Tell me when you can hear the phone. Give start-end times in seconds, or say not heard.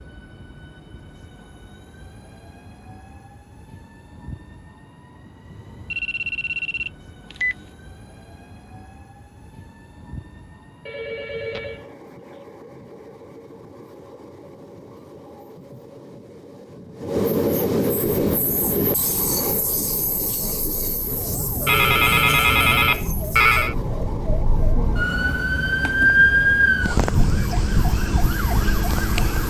5.9-7.7, 10.8-11.9, 21.6-23.8.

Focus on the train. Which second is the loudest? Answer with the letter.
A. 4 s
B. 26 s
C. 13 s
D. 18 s
D.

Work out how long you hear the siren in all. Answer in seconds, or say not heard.
11 s.